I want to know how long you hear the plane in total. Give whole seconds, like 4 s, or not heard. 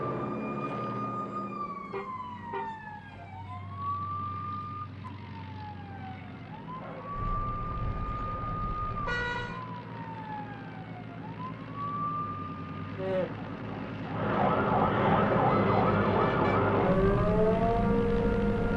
19 s.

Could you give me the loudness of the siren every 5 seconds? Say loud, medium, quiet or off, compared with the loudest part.
quiet, quiet, medium, loud.